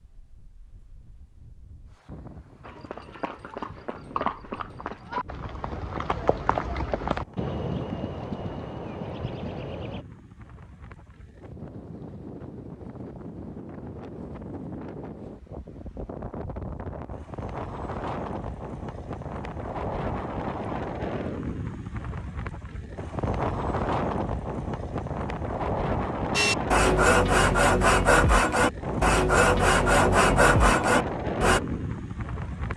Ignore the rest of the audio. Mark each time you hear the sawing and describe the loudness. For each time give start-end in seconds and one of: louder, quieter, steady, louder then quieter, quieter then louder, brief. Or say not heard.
26.4-31.6 steady.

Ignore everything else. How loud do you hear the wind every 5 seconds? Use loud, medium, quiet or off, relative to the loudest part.
quiet, quiet, medium, medium, loud, loud, loud.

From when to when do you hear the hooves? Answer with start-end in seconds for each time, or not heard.
2.6-10.1.